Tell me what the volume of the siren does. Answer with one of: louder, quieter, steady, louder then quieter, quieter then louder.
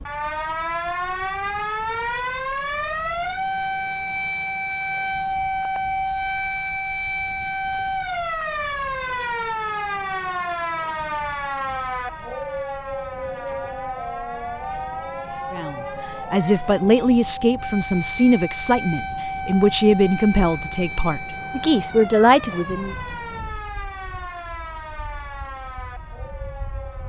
quieter.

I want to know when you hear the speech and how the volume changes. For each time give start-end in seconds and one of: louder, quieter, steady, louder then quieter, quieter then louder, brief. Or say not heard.
15.5-22.9 steady.